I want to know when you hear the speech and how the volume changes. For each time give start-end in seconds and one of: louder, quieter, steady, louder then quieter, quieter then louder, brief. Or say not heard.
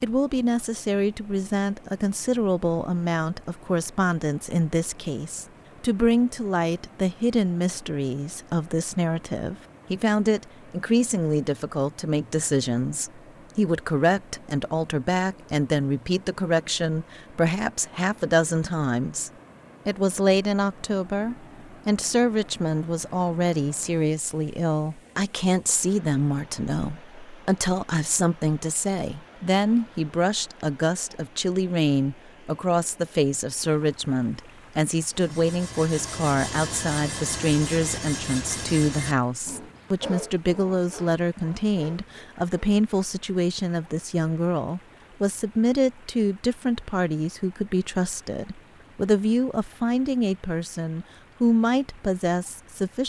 0.0-53.0 steady.